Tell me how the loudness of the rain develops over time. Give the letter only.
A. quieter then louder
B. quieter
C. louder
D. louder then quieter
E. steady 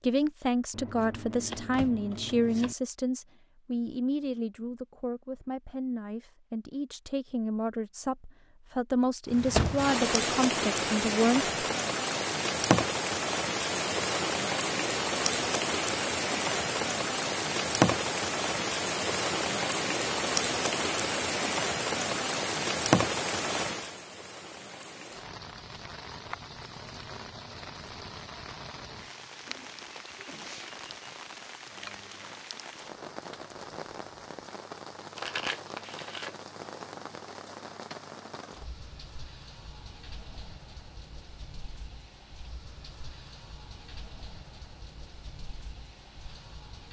B.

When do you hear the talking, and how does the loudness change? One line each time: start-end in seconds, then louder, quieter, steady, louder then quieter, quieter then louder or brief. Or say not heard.
0.0-11.5 quieter then louder.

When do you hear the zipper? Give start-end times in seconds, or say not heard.
not heard.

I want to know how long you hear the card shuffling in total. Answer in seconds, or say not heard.
3 s.